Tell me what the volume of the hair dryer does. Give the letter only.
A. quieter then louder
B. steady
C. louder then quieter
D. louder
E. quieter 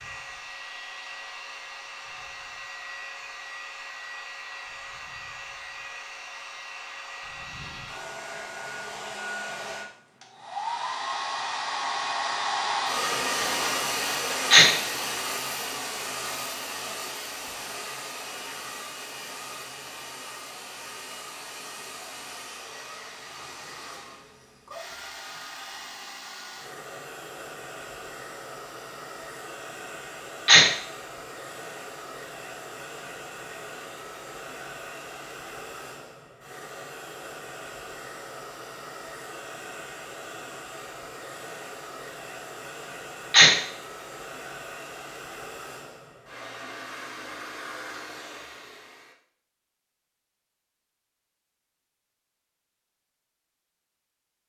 C.